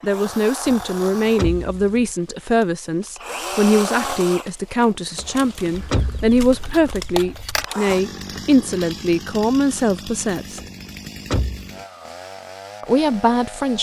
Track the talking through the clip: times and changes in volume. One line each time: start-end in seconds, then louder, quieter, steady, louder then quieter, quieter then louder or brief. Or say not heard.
0.0-10.6 steady
12.8-13.7 brief.